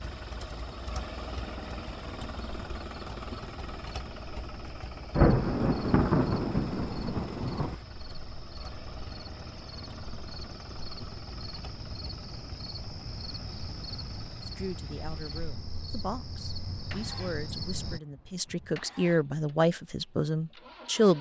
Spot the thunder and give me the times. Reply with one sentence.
You can hear the thunder from 5.2 to 7.8 s.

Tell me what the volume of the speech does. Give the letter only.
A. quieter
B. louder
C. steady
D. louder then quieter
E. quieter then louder
B.